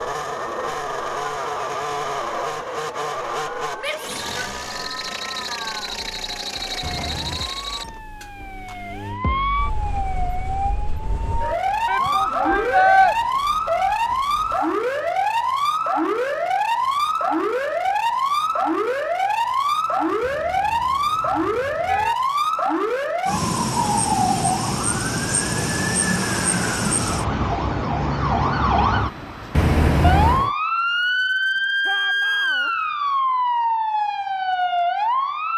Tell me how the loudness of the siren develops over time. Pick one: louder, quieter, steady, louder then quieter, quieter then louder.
louder.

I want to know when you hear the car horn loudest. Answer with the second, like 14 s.
30 s.